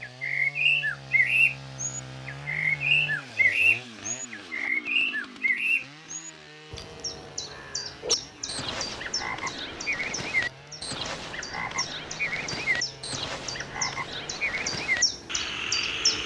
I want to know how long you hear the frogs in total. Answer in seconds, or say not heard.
8 s.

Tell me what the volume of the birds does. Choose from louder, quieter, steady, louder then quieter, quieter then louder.
quieter then louder.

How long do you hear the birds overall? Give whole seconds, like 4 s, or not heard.
16 s.